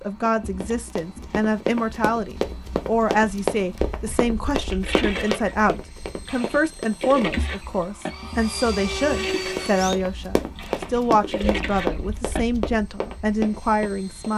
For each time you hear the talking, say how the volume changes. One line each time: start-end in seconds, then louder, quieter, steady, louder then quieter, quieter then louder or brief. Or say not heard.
0.0-14.3 steady.